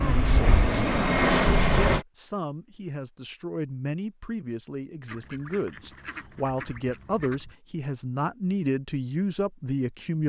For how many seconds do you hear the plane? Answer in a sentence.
You can hear the plane for 2 seconds altogether.